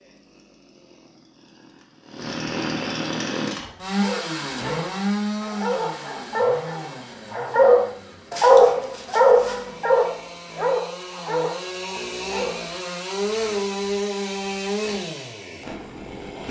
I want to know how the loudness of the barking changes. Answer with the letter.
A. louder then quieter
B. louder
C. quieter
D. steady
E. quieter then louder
A.